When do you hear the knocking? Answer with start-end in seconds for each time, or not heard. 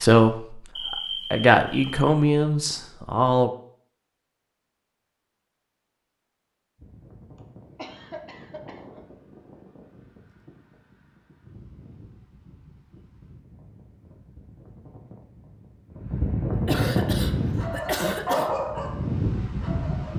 not heard.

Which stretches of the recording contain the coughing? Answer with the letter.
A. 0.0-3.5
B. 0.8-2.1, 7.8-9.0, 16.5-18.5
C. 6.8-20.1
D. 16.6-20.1
B.